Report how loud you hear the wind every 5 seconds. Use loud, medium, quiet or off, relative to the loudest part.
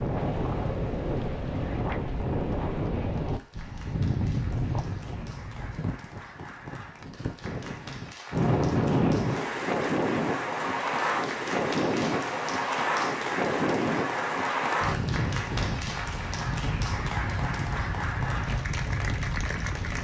loud, loud, loud, medium.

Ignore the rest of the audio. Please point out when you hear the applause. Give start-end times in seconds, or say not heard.
0.0-19.9.